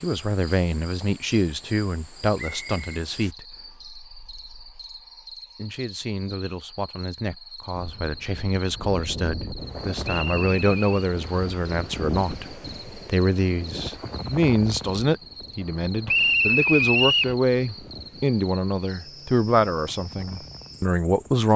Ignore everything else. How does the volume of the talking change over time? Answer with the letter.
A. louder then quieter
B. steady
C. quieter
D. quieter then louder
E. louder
D.